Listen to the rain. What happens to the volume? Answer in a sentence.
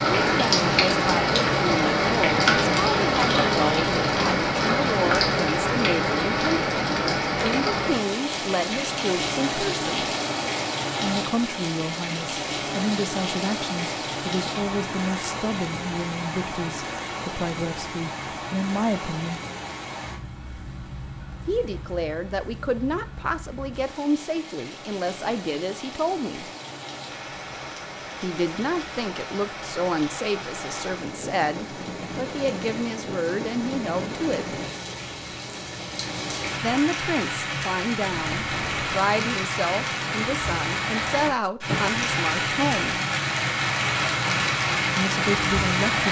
The volume of the rain goes down, then up.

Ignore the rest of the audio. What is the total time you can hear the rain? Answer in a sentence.
You can hear the rain for 46 seconds altogether.